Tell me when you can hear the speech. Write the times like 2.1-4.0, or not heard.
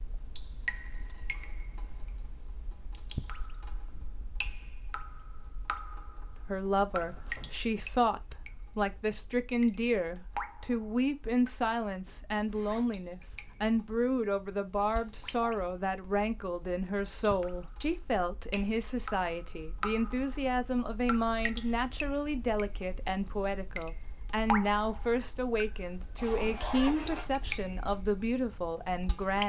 6.3-29.4.